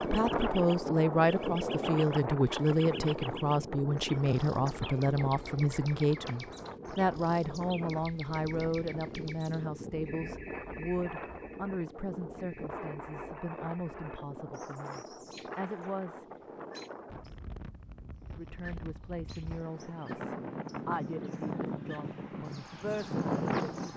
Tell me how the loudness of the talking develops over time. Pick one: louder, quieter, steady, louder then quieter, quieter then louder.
quieter.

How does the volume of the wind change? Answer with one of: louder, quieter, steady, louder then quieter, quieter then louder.
quieter then louder.